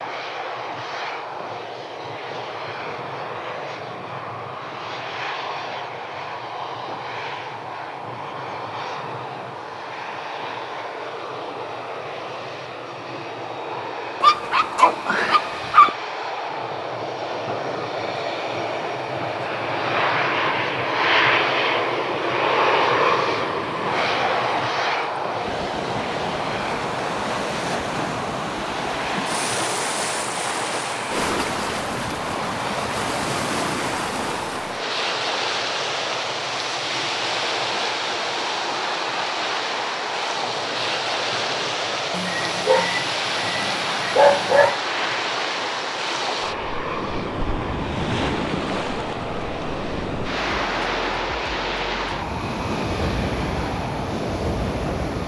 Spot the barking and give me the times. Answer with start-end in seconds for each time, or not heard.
14.2-15.9, 42.1-44.8.